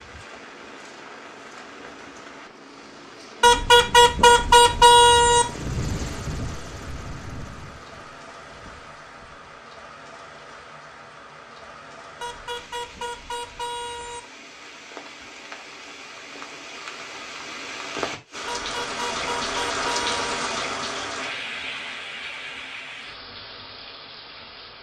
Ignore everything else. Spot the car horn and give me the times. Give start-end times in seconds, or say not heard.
3.4-5.5, 12.2-14.2, 18.4-20.4.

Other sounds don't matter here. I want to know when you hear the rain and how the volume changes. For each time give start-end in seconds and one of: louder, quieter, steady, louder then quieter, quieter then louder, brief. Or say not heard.
0.0-24.7 louder.